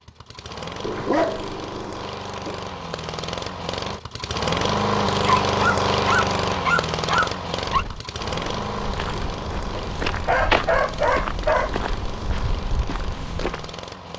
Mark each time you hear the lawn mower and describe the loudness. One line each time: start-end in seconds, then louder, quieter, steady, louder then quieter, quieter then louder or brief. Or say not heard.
0.0-14.1 louder then quieter.